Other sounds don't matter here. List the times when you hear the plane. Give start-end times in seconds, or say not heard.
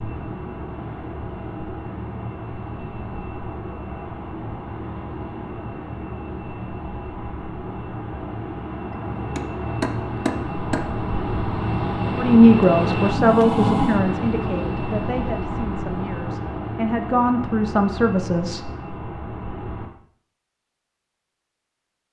0.0-19.9.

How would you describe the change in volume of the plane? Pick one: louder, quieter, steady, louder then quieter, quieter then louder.
louder then quieter.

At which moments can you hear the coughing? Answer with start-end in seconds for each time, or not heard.
not heard.